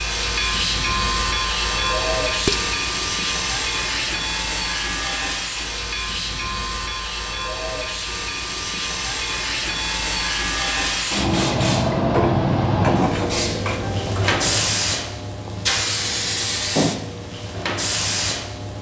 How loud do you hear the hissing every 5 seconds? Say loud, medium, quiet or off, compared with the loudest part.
loud, medium, loud, loud.